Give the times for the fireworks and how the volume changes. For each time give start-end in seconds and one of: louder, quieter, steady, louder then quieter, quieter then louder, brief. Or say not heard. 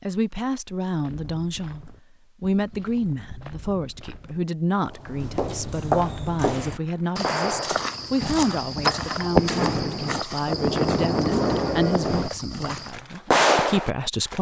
6.0-14.3 louder.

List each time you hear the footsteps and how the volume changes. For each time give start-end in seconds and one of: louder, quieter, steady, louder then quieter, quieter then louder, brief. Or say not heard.
1.0-12.9 louder then quieter.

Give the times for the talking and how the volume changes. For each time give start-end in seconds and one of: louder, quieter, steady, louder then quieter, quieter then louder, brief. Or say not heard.
0.0-14.3 steady.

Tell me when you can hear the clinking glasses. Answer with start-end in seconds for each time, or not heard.
8.8-9.3.